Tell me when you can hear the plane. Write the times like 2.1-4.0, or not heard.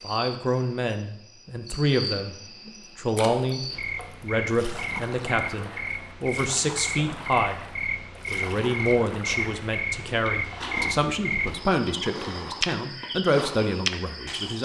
not heard.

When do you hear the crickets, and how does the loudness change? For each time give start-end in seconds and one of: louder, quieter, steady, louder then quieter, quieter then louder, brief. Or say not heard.
0.0-14.6 louder.